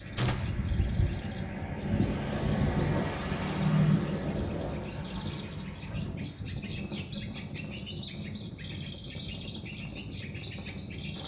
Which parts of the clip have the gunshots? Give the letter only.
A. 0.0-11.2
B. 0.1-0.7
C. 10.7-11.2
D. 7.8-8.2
B.